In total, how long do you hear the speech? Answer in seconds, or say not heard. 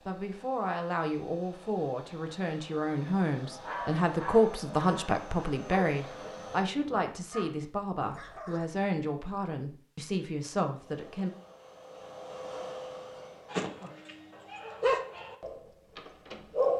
11 s.